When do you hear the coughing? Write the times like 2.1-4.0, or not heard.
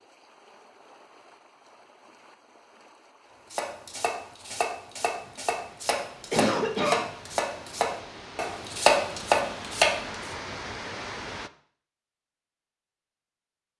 6.3-7.0.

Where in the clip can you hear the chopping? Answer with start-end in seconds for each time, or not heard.
3.5-10.2.